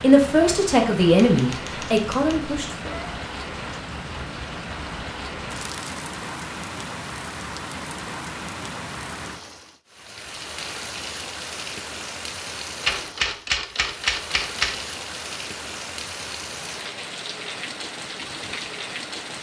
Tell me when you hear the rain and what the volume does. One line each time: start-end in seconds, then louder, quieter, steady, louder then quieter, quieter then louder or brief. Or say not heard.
0.0-19.3 steady.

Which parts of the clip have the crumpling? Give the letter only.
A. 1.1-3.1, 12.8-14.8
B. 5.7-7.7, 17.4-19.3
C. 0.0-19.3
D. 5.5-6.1
D.